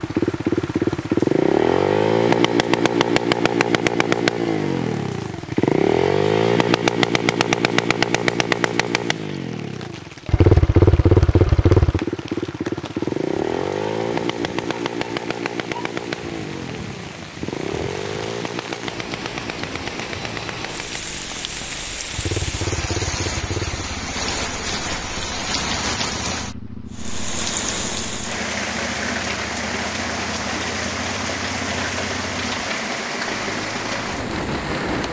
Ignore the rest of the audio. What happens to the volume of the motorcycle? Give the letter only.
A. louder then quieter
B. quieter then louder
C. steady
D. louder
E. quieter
E.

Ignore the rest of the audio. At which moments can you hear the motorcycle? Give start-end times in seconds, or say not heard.
0.0-35.0.